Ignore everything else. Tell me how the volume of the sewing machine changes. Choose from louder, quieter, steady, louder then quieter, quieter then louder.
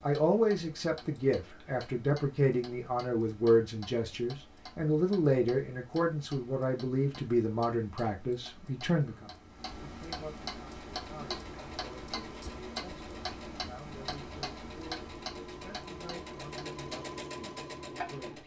louder.